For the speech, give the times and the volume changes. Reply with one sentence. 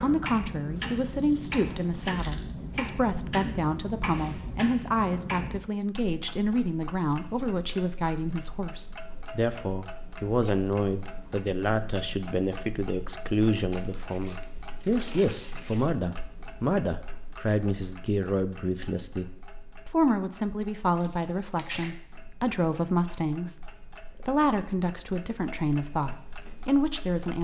The speech can be heard from 0.0 to 27.3 s, at a steady volume.